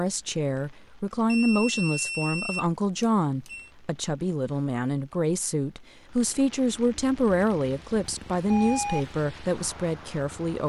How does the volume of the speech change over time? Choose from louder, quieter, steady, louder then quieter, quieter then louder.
steady.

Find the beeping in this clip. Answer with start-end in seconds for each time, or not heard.
1.2-3.7, 8.1-9.1.